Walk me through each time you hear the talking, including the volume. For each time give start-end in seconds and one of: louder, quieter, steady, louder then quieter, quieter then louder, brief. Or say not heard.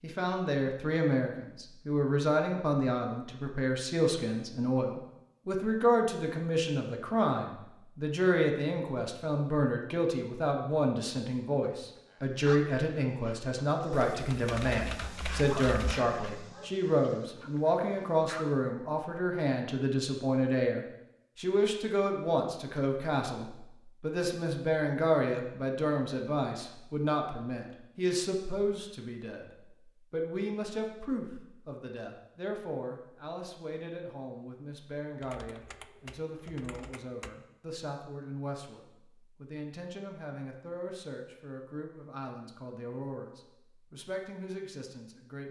0.0-45.4 quieter.